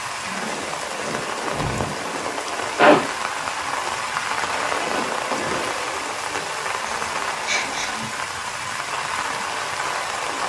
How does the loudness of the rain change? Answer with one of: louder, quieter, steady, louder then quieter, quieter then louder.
steady.